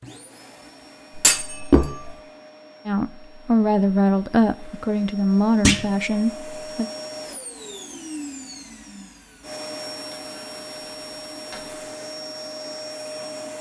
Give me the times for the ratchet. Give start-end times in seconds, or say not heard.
not heard.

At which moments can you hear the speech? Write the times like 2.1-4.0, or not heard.
2.9-6.8.